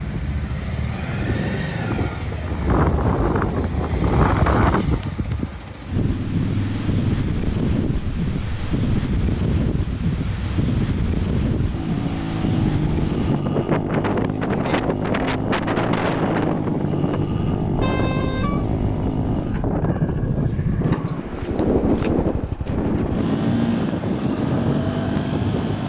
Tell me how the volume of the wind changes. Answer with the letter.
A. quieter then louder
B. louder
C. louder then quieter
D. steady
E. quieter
D.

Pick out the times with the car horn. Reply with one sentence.
The car horn can be heard from 17.8 to 18.6 s.